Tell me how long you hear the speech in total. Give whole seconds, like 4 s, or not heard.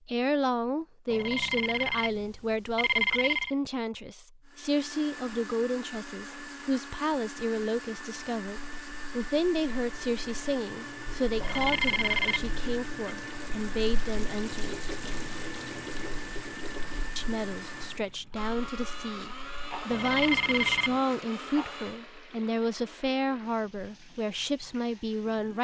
23 s.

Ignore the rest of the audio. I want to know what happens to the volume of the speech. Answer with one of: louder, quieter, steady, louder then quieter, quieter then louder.
steady.